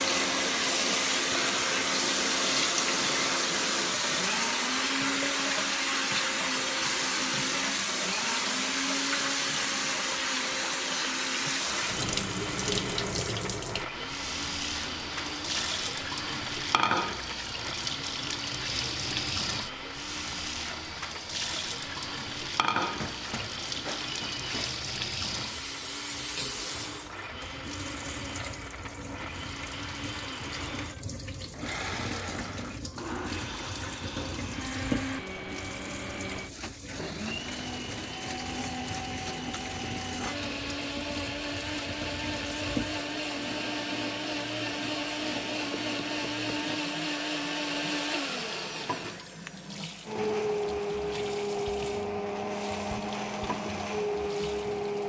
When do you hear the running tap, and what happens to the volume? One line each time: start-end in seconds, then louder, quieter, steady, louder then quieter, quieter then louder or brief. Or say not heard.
0.0-55.0 quieter.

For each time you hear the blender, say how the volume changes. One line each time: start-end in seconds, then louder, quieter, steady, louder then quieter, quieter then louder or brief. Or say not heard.
0.0-55.0 quieter then louder.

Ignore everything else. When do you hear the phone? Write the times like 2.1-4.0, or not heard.
22.9-24.8.